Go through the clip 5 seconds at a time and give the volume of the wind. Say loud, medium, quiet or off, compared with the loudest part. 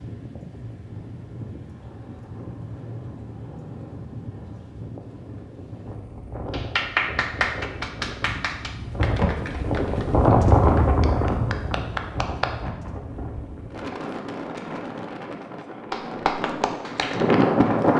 quiet, medium, loud, loud.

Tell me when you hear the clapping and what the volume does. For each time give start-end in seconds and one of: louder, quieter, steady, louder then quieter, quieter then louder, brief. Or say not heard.
6.5-12.5 quieter then louder
15.9-17.9 brief.